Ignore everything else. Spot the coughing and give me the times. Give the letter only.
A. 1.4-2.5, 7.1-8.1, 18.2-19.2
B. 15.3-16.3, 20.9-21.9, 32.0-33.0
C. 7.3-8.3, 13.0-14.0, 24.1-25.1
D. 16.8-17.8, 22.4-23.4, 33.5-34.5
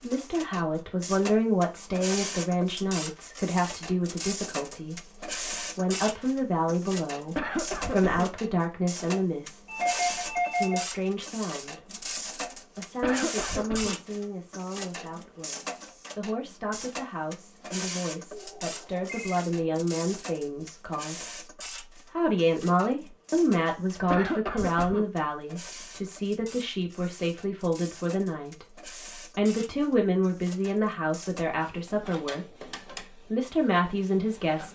C.